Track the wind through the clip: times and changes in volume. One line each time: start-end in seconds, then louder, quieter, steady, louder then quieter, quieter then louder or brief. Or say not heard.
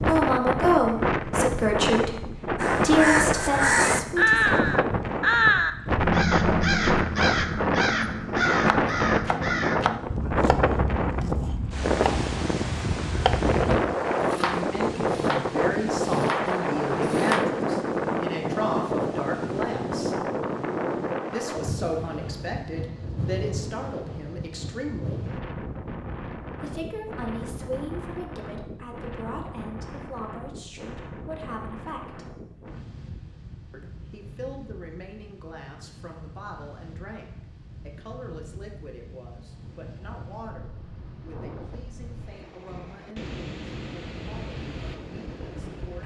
0.0-46.0 quieter.